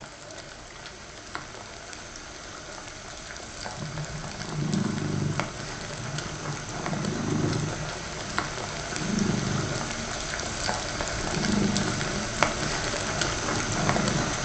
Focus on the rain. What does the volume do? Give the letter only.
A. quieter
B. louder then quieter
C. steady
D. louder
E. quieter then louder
D.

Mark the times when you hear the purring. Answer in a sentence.
The purring can be heard from 3.8 to 14.3 s.